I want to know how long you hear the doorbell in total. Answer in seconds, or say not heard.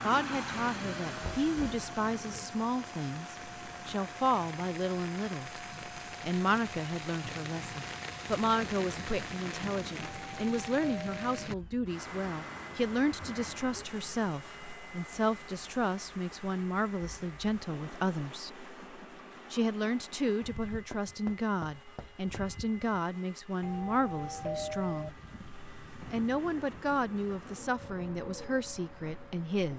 3 s.